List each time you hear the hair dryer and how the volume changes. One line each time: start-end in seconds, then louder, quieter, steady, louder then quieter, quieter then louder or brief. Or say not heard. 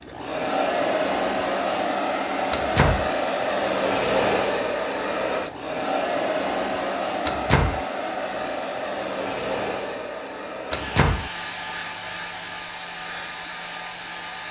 0.0-14.4 quieter.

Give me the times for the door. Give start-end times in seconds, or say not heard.
2.5-3.1, 7.2-7.8, 10.7-11.3.